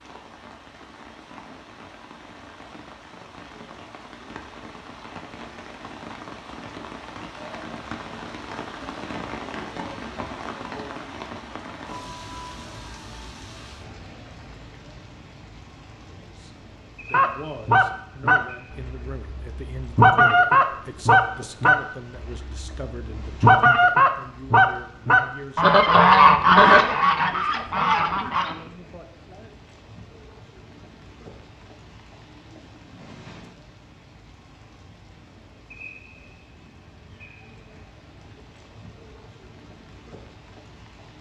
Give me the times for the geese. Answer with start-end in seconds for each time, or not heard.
17.1-28.6.